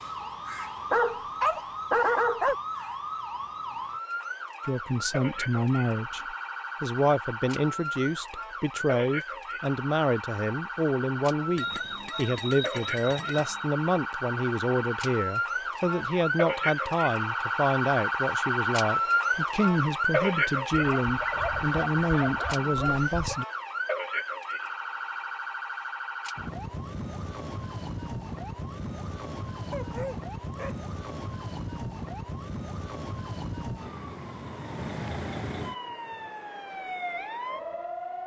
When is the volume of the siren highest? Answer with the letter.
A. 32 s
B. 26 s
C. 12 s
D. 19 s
D.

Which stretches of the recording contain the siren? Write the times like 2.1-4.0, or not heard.
0.0-38.2.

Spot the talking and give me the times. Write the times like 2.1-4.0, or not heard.
4.7-23.4.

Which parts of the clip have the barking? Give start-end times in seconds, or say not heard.
0.9-2.5, 20.7-23.4, 29.7-30.8.